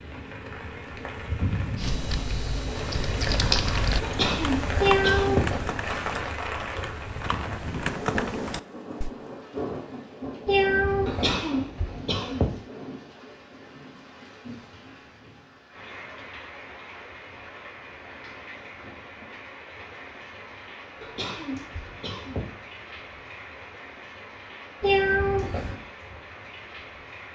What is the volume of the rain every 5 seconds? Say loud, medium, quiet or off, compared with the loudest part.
loud, loud, medium, medium, medium, medium.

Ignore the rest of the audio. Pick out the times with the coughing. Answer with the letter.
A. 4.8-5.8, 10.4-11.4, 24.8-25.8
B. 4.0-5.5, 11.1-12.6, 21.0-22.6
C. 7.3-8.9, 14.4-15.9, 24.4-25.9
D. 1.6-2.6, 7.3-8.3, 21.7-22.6
B.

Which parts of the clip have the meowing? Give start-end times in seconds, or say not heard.
4.8-5.8, 10.4-11.4, 24.8-25.8.